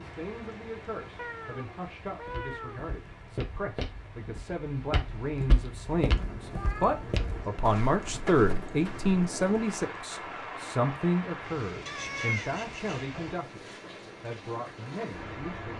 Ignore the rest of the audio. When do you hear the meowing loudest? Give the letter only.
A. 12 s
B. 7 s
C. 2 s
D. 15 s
A.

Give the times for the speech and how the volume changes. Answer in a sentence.
You can hear the speech from 0.0 to 15.7 s, getting louder then quieter.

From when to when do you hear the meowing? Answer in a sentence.
You can hear the meowing from 1.1 to 2.9 s, from 6.2 to 7.5 s and from 11.8 to 13.1 s.